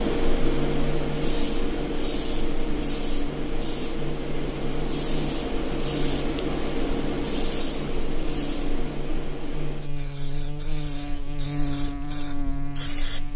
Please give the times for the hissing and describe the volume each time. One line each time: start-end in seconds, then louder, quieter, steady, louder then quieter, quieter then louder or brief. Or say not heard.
0.0-13.3 quieter.